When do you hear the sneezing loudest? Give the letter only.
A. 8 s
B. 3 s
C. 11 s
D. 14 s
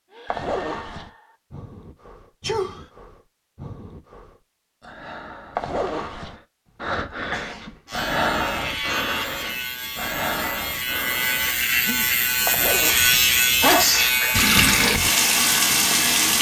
D.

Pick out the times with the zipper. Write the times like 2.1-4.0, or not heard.
0.2-1.1, 5.5-6.3, 12.4-13.2.